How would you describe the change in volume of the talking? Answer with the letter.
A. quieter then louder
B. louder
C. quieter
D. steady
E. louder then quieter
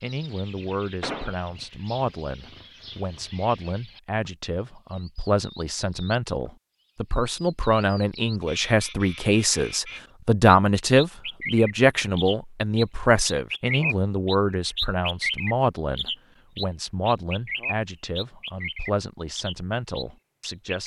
E.